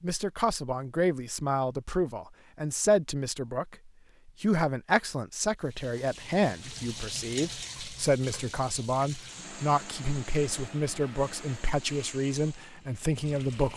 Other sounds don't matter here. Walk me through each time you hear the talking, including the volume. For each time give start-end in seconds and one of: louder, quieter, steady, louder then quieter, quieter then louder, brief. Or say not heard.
0.0-13.7 steady.